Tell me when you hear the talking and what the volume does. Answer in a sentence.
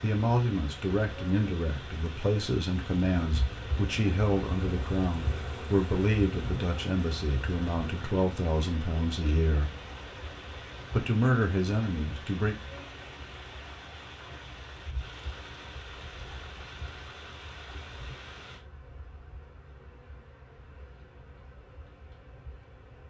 You can hear the talking from 0.0 to 9.7 s, at a steady volume; and briefly from 10.9 to 12.6 s.